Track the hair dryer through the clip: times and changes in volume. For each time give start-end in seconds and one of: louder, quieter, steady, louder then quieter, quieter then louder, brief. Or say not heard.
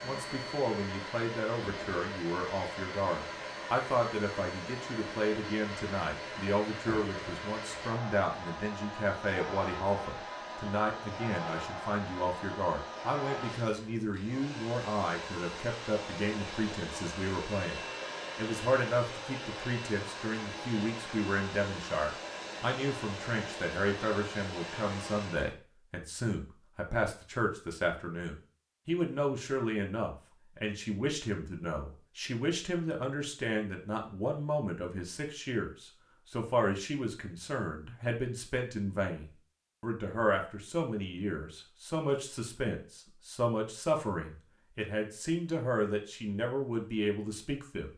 0.0-25.6 steady.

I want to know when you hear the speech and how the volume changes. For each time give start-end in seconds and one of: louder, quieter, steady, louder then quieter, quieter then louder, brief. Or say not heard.
0.0-47.9 steady.